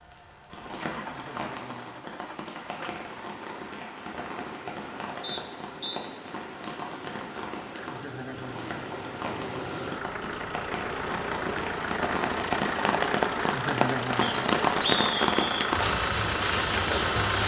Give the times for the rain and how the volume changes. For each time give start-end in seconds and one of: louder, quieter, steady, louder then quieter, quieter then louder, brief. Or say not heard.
0.0-17.4 louder.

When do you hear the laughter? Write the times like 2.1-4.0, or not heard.
1.1-2.1, 7.7-8.7, 13.3-14.5.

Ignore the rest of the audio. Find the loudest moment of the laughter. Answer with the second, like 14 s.
14 s.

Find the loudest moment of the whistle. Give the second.
15 s.